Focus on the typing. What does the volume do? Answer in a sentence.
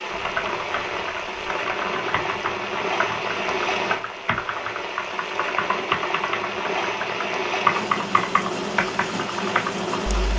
The loudness of the typing goes up.